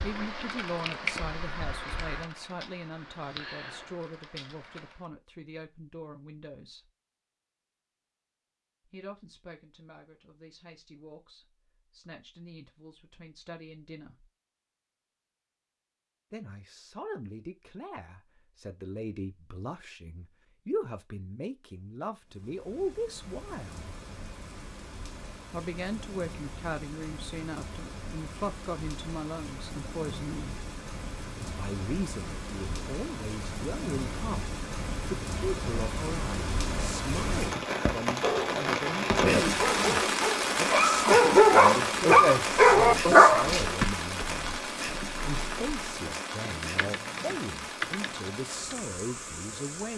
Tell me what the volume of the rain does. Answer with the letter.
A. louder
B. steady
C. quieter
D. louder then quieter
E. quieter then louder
D.